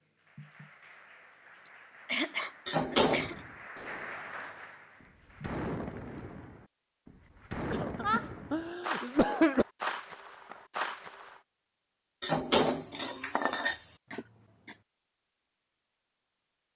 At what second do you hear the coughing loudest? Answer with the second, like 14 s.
9 s.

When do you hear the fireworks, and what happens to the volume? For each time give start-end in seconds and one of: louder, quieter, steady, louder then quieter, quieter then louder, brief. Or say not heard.
3.0-11.4 louder.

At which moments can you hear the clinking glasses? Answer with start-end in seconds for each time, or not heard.
2.6-3.4, 12.2-13.9.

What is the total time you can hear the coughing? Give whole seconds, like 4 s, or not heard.
4 s.